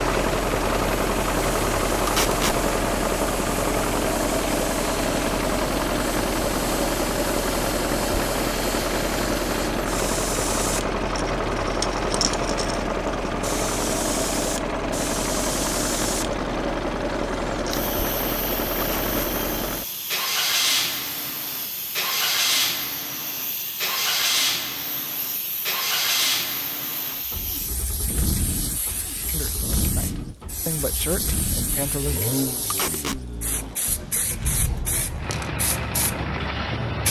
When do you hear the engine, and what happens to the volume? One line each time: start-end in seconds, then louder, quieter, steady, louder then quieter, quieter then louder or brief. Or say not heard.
0.0-37.0 quieter.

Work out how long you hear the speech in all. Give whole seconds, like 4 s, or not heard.
3 s.